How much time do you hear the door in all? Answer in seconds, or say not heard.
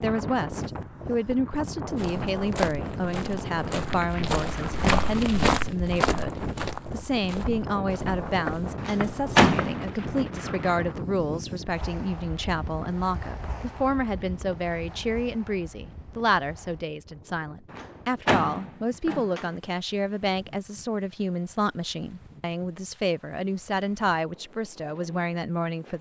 3 s.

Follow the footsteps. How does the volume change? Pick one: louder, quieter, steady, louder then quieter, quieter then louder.
louder then quieter.